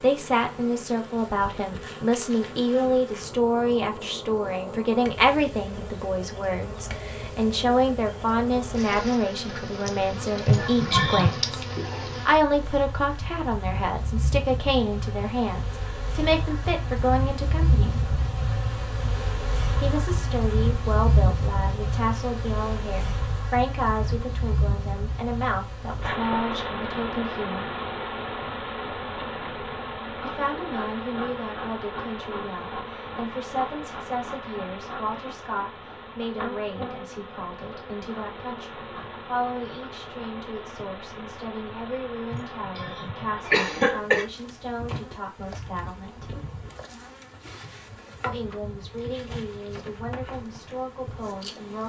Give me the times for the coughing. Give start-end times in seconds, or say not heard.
10.4-11.4, 42.3-44.2.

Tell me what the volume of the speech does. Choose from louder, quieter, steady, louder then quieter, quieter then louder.
quieter.